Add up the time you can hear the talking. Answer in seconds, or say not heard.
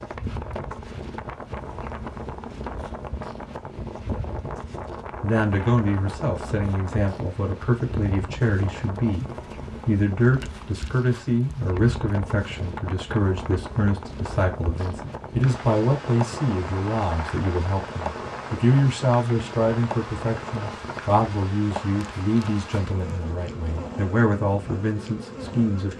21 s.